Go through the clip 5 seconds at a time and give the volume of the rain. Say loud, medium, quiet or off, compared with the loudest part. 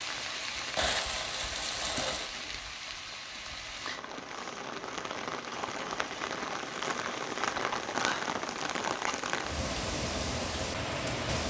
medium, loud, loud.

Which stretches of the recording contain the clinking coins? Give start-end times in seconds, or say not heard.
0.8-2.4.